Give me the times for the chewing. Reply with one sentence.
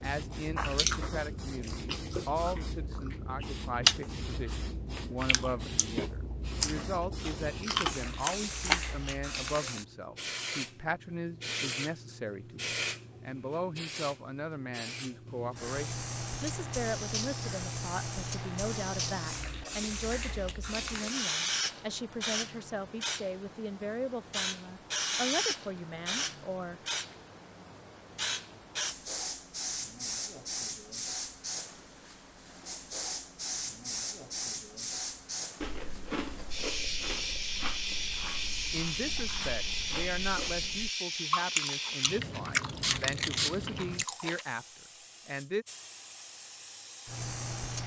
You can hear the chewing from 0.6 to 9.2 s and from 35.6 to 44.5 s.